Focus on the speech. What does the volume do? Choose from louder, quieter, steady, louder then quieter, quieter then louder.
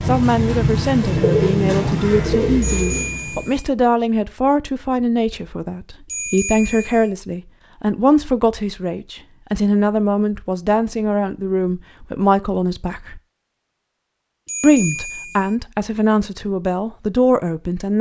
steady.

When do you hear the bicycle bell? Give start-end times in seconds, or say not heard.
2.6-3.7, 6.0-7.1, 14.4-15.6.